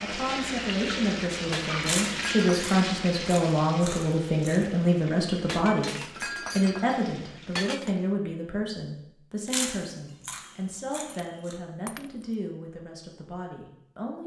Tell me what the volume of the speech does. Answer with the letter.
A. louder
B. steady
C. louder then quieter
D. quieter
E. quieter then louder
D.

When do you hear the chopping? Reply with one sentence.
You can't hear the chopping here.